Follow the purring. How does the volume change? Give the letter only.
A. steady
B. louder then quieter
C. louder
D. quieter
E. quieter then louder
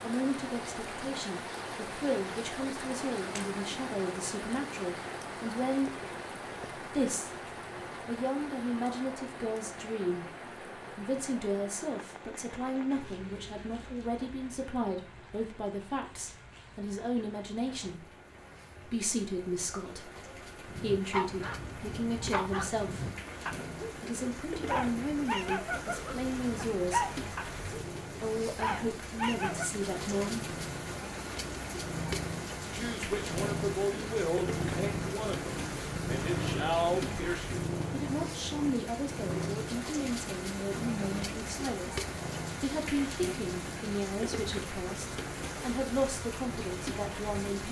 B.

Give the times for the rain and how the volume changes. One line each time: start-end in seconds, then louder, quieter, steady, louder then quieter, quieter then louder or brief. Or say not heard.
0.0-47.6 quieter then louder.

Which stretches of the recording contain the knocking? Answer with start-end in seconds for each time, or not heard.
5.8-6.7.